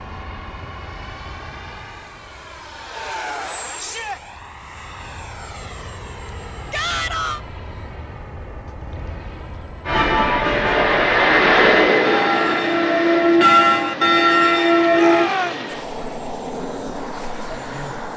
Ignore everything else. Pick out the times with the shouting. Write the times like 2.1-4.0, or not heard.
3.8-4.2, 6.7-7.4, 14.9-15.7.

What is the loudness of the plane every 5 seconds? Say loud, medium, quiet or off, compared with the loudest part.
quiet, quiet, loud, medium.